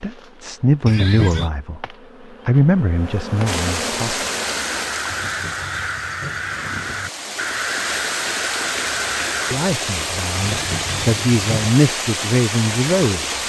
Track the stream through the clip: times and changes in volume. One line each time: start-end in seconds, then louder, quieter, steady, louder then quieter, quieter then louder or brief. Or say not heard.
3.5-13.4 quieter then louder.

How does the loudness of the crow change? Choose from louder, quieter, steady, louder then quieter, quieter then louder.
steady.